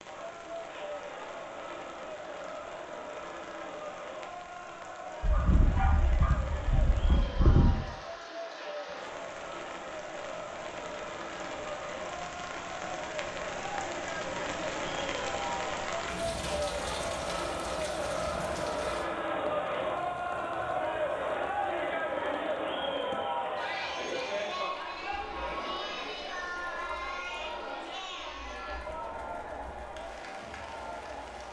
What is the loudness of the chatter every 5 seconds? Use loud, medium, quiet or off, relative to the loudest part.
medium, medium, medium, loud, loud, medium, medium.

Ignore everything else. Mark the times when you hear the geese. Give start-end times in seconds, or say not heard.
5.2-7.7.